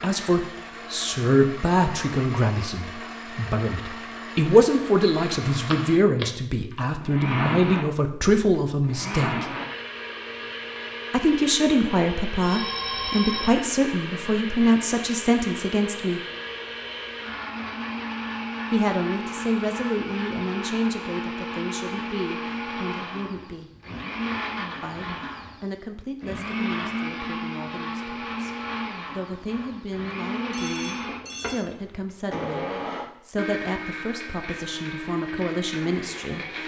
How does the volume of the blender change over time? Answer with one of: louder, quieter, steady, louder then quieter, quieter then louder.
steady.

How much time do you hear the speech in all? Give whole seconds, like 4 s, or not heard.
30 s.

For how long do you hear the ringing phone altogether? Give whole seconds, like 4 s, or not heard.
3 s.